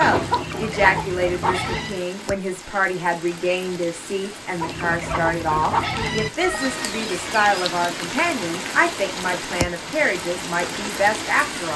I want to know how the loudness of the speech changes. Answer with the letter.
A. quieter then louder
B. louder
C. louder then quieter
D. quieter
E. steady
E.